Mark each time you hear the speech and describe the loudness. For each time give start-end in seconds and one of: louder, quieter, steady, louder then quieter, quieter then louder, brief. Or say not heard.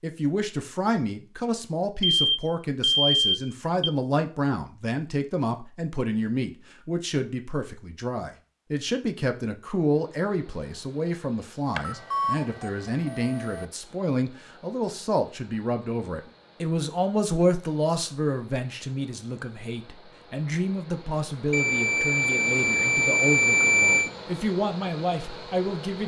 0.0-26.0 steady.